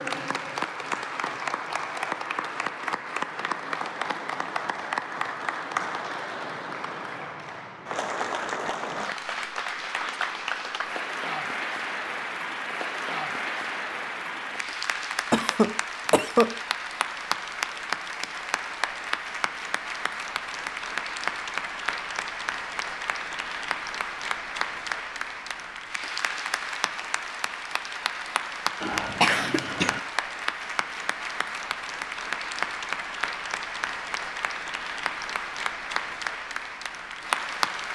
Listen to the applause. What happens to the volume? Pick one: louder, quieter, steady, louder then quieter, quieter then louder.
steady.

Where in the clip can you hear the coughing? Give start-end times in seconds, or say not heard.
15.3-16.5, 28.8-30.0.